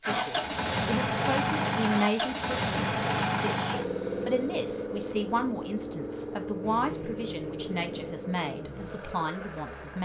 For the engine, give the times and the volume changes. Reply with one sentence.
You can hear the engine from 0.0 to 9.9 s, getting quieter.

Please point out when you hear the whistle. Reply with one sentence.
You can't hear the whistle here.